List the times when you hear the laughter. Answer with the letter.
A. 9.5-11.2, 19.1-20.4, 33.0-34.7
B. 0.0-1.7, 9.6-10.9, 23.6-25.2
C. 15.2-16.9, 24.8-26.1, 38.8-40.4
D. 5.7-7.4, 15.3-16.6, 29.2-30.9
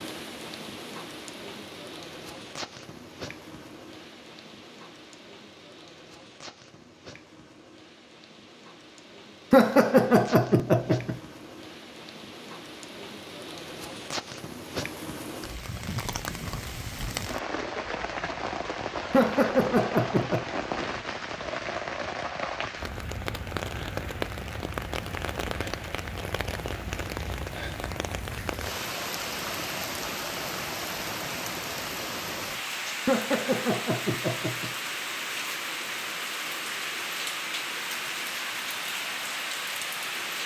A.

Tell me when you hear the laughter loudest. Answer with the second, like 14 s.
10 s.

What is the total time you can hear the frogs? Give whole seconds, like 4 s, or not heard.
not heard.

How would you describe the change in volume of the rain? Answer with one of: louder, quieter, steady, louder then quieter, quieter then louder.
louder.